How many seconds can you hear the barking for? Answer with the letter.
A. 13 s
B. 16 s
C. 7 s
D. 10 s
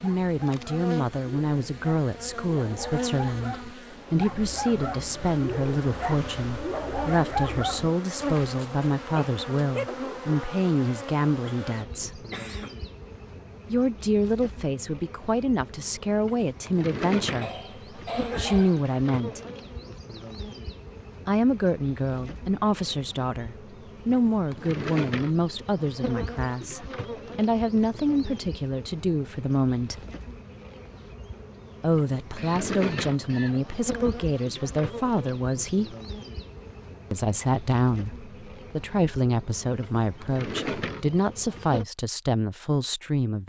D.